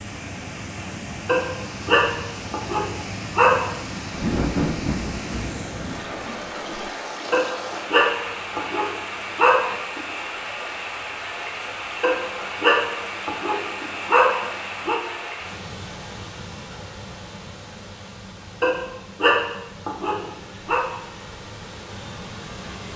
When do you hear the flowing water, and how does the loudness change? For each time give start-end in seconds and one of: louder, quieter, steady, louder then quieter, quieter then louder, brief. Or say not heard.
0.0-22.9 quieter.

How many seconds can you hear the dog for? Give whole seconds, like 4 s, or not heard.
10 s.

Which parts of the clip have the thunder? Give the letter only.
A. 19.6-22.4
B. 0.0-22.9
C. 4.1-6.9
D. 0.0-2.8
C.